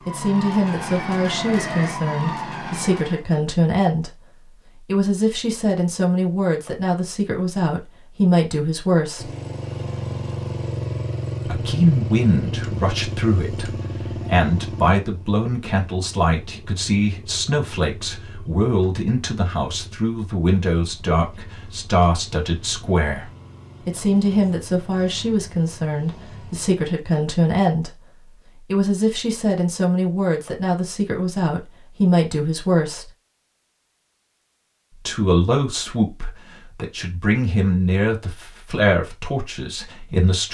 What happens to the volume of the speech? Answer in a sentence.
The volume of the speech stays about the same.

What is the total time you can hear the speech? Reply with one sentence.
The speech can be heard for 35 seconds in total.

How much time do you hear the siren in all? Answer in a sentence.
The siren can be heard for 3 seconds in total.